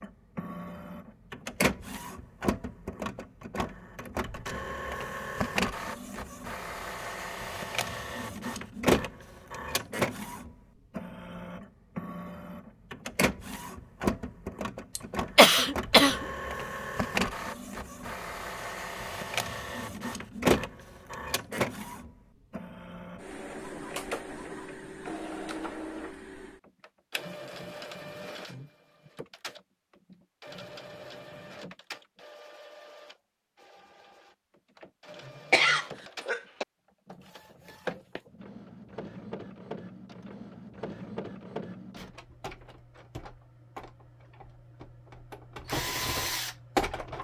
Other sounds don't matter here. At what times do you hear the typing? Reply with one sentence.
You can't hear the typing here.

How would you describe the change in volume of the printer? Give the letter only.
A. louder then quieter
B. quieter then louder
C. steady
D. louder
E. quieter
B.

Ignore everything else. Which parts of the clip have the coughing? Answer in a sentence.
You can hear the coughing from 14.9 to 16.2 s and from 35.5 to 36.6 s.